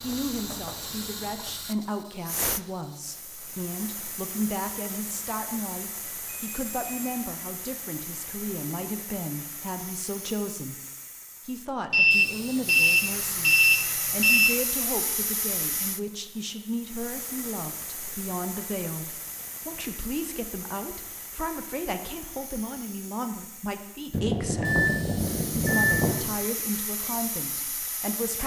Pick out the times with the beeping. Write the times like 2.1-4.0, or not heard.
6.3-7.1, 11.9-14.5, 24.1-26.1.